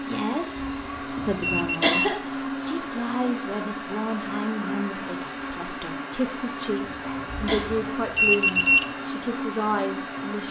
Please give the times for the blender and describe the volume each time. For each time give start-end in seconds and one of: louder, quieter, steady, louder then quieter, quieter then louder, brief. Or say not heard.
0.0-10.4 steady.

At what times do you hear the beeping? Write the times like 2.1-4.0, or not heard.
0.6-2.1, 7.3-8.8.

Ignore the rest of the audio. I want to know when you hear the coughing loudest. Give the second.
2 s.